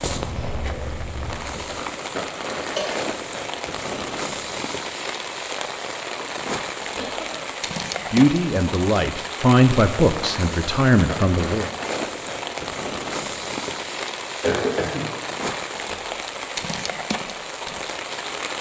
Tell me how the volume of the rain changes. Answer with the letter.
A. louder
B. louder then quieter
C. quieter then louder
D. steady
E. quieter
D.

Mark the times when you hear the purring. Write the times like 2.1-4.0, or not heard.
0.1-1.7.